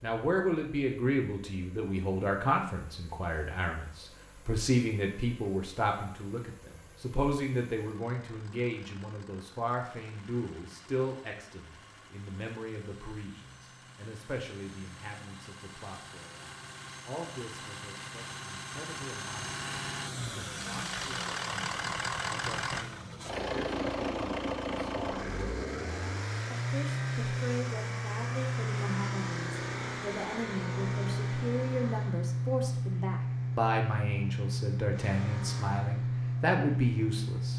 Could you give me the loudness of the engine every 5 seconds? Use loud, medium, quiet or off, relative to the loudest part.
quiet, quiet, quiet, medium, loud, loud, loud, loud.